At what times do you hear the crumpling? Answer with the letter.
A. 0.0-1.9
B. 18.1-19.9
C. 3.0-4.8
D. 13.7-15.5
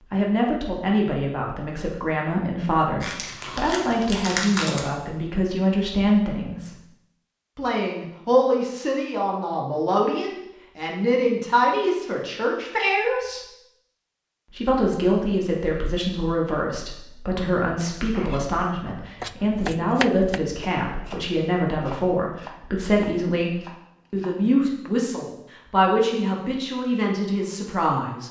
C.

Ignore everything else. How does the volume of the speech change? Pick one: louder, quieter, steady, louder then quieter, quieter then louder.
steady.